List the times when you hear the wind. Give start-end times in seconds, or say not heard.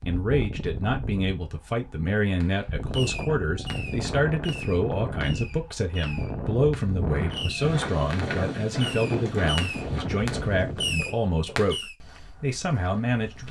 0.0-11.1.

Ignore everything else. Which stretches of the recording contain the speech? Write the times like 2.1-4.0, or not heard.
0.1-13.4.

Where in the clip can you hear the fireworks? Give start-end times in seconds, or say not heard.
2.4-11.9.